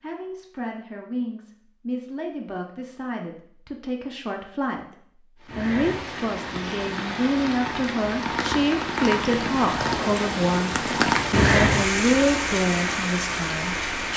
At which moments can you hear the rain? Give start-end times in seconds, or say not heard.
5.5-14.1.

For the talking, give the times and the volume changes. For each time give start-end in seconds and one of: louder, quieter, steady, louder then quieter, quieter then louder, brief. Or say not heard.
0.0-14.1 louder.